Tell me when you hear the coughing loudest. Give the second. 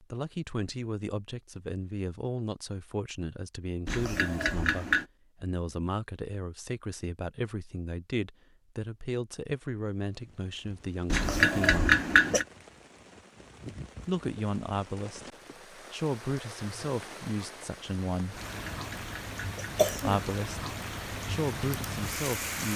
12 s.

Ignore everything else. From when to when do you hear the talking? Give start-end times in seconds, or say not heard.
0.0-12.0, 14.1-18.4, 20.1-22.7.